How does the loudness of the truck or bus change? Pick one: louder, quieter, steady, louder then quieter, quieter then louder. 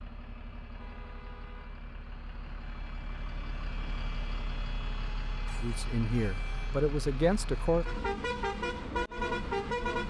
louder.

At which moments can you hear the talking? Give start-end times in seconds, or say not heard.
5.6-7.8.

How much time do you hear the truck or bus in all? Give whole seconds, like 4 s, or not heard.
10 s.